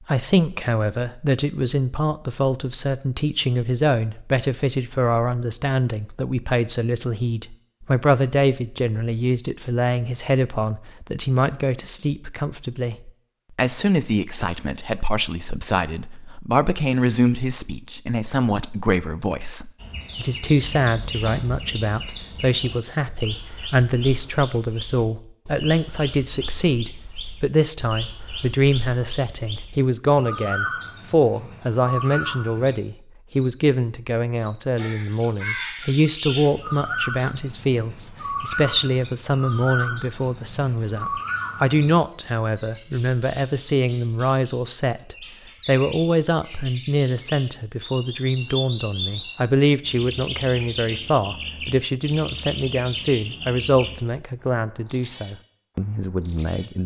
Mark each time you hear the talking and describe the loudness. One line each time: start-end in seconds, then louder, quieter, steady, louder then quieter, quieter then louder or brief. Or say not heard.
0.1-56.8 steady.